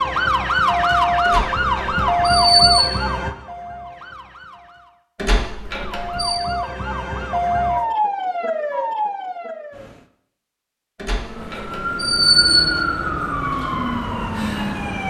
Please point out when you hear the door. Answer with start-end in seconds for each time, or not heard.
1.2-2.9, 5.2-6.4, 11.0-12.7.